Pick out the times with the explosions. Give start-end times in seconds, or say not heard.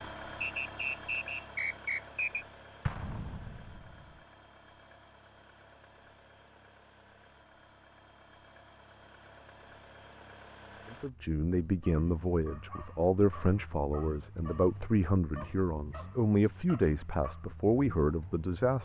2.9-4.2.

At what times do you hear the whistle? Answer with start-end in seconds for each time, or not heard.
0.4-2.5.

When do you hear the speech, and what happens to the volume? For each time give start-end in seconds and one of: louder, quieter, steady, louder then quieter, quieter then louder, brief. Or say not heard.
10.9-18.8 steady.